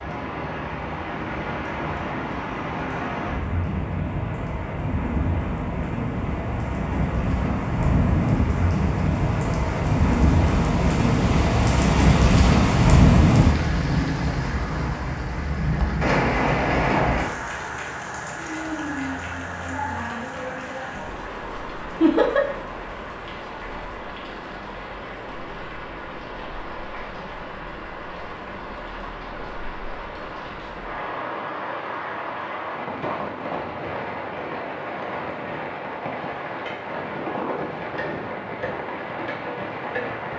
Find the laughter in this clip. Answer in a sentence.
You can hear the laughter from 22.0 to 22.4 s.